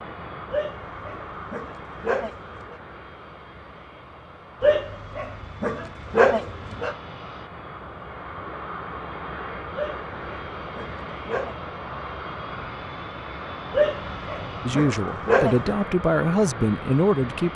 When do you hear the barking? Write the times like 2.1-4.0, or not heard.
0.5-2.8, 4.6-7.0, 9.8-11.6, 13.7-15.8.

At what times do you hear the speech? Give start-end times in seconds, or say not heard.
14.7-17.5.